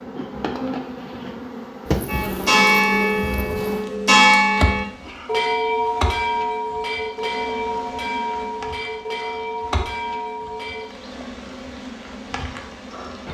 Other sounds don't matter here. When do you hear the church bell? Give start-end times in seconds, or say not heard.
2.0-10.8.